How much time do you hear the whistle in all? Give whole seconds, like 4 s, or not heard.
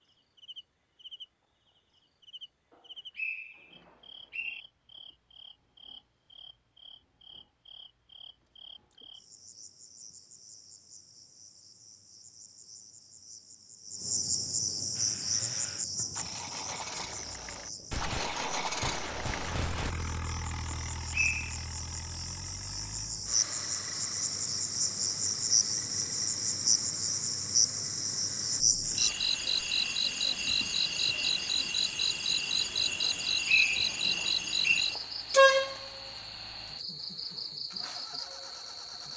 4 s.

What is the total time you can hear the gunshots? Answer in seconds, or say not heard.
2 s.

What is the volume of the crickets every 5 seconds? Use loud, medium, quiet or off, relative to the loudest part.
quiet, quiet, medium, medium, medium, loud, loud, loud.